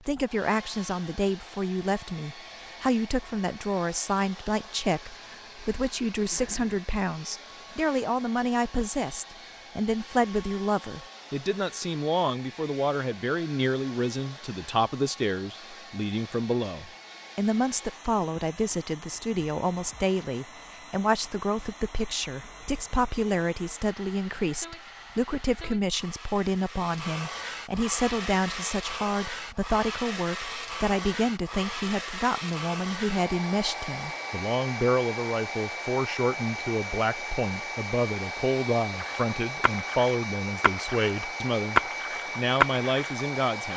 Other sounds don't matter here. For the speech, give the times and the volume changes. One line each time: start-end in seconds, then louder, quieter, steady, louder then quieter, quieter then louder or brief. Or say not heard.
0.1-43.7 steady.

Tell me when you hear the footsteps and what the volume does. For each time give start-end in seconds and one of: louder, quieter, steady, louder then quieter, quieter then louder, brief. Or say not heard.
not heard.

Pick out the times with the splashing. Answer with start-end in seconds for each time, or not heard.
39.0-43.7.